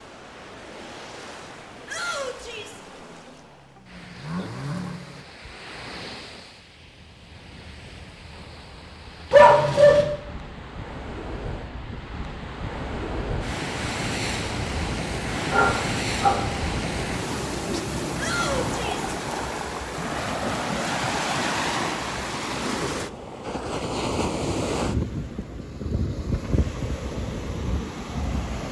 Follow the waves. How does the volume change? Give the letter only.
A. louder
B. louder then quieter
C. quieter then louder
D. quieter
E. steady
A.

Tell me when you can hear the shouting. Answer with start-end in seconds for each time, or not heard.
1.9-2.8, 18.1-19.1.